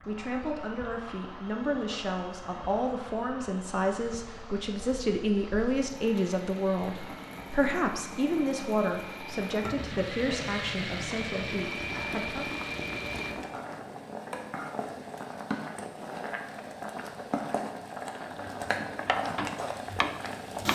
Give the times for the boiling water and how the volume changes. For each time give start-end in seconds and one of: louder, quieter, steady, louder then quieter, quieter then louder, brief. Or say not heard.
0.0-20.6 louder.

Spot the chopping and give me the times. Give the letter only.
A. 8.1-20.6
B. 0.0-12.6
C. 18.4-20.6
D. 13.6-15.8
C.